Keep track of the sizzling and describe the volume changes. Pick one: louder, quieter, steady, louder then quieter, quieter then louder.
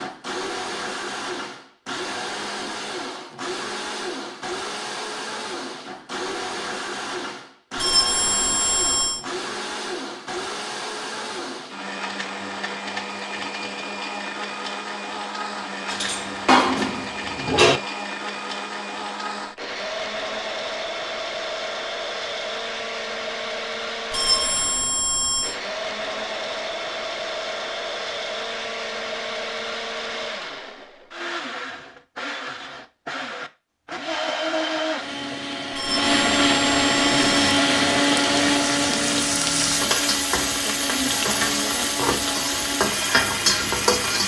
louder.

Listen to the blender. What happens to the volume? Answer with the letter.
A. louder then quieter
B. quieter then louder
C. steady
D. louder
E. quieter
D.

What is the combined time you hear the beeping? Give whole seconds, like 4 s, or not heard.
5 s.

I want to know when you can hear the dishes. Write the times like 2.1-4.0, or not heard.
15.9-17.8.